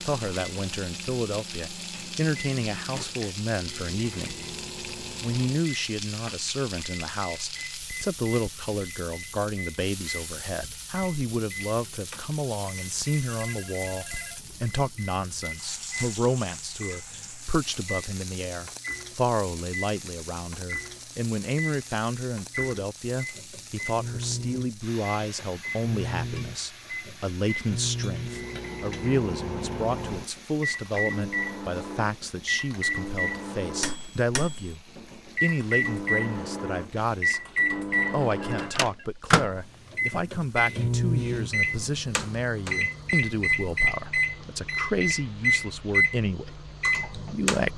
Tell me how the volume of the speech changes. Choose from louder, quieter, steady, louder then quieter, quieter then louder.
steady.